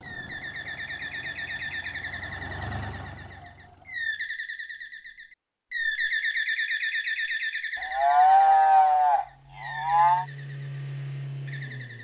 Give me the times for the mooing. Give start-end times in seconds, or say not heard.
7.8-10.2.